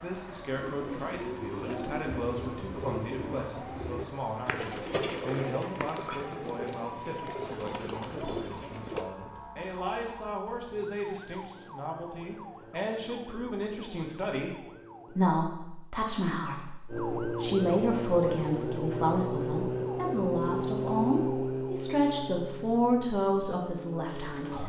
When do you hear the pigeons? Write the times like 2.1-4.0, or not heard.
0.6-9.1.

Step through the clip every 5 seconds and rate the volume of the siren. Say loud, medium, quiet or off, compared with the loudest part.
quiet, quiet, quiet, loud, loud.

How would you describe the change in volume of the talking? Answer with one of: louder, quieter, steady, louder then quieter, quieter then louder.
louder.